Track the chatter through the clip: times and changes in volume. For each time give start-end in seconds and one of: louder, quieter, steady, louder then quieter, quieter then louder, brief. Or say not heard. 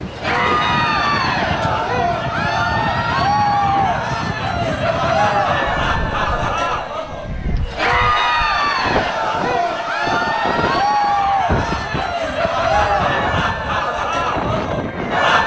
0.1-15.4 steady.